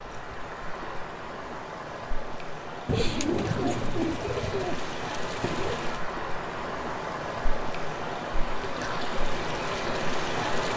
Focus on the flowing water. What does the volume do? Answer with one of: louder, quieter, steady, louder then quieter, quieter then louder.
louder.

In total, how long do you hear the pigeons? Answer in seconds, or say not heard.
3 s.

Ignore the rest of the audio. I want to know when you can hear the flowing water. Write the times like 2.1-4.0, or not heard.
0.0-10.7.